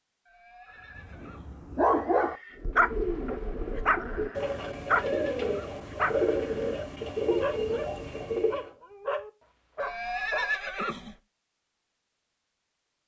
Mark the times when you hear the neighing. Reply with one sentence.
You can hear the neighing from 0.2 to 2.6 s, from 4.6 to 5.8 s and from 9.8 to 11.2 s.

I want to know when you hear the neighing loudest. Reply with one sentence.
The loudest moment of the neighing is at 10 seconds.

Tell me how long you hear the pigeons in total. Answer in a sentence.
You can hear the pigeons for 6 seconds altogether.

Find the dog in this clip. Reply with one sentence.
The dog can be heard from 0.9 to 10.5 s.